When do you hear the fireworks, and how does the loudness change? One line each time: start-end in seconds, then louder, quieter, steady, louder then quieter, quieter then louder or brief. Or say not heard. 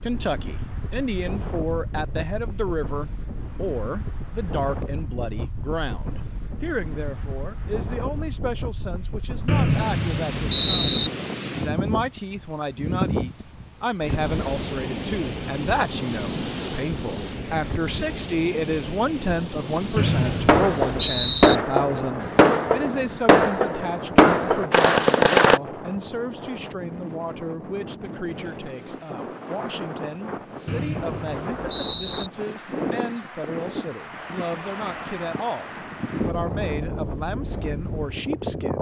20.4-25.6 steady.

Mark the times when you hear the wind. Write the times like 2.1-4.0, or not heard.
0.0-38.7.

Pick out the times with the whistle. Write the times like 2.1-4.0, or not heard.
9.4-11.1, 19.9-21.6, 30.6-32.3.